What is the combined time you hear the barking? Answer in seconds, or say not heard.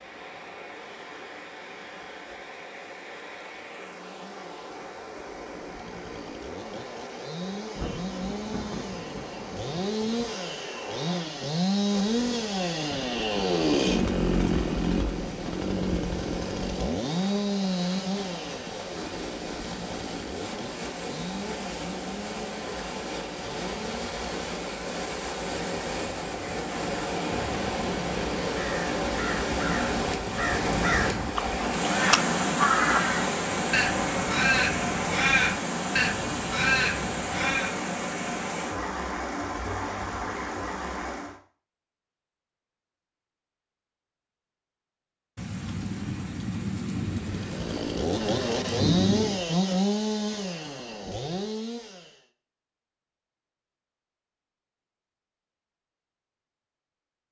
not heard.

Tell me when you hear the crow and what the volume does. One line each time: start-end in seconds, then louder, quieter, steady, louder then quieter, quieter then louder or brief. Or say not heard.
26.4-37.8 louder.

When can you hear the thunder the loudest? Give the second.
49 s.